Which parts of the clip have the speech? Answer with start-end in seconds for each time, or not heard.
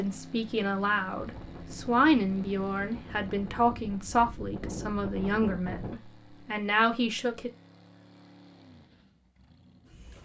0.0-7.5.